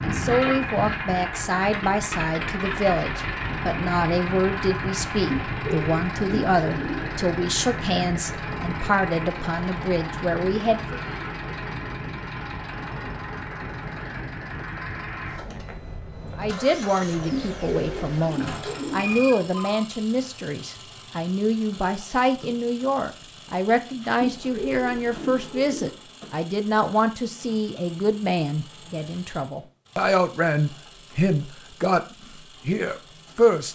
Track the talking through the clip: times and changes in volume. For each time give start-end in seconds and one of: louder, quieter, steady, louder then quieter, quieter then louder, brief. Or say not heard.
0.1-11.0 steady
16.4-33.7 steady.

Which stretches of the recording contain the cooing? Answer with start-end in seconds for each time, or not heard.
5.3-7.2, 17.3-19.1, 24.2-26.0.